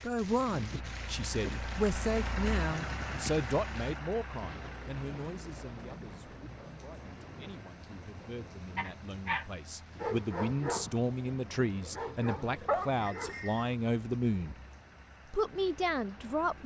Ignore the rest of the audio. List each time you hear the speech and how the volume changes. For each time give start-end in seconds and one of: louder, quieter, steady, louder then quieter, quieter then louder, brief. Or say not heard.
0.0-14.6 quieter then louder
15.3-16.6 brief.